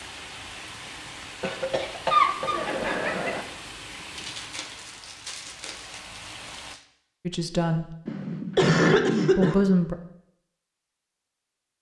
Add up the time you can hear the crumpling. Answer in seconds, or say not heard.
3 s.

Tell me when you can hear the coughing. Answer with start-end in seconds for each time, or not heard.
1.4-3.5, 8.1-9.6.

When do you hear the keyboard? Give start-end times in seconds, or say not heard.
not heard.